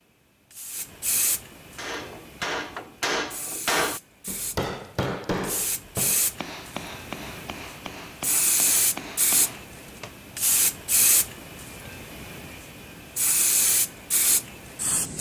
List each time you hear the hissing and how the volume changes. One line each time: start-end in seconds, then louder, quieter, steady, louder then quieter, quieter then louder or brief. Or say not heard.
0.0-15.1 louder.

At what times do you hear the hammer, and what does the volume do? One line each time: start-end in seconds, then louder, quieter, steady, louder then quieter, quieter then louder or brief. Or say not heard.
1.8-10.2 quieter.